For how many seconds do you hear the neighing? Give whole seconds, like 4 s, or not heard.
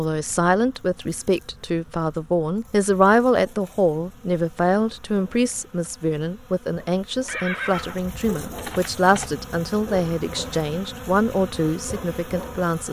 2 s.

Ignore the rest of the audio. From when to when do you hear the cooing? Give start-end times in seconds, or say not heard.
not heard.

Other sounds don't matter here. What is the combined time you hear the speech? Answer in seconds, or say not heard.
13 s.